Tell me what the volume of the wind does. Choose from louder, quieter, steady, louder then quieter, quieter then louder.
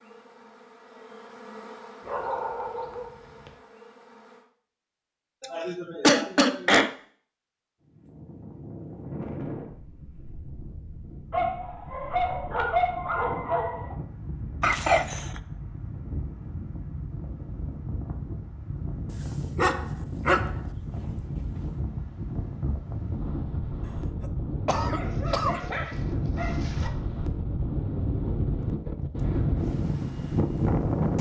louder.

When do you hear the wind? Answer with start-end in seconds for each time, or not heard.
7.8-31.1.